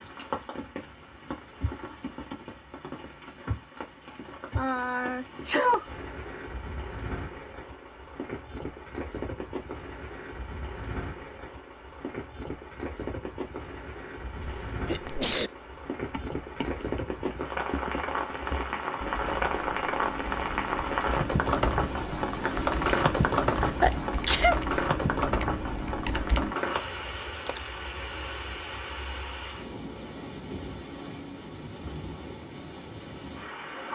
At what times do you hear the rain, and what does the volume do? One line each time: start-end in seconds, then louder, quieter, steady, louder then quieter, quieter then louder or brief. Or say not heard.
0.0-33.9 louder then quieter.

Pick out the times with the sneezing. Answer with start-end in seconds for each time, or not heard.
4.5-5.8, 14.4-15.5, 23.4-24.6.